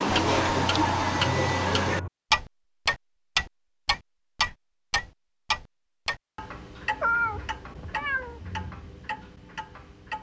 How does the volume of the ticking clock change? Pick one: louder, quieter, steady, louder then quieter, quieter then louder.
quieter.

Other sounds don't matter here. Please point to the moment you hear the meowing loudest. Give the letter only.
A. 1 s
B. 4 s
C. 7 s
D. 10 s
C.